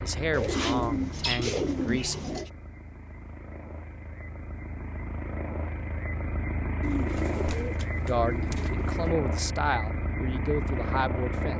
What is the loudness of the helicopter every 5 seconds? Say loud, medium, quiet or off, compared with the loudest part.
medium, loud, loud.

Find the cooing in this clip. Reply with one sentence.
The cooing can be heard from 0.3 to 2.5 s and from 6.8 to 9.2 s.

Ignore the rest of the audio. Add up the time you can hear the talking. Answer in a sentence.
You can hear the talking for 6 seconds altogether.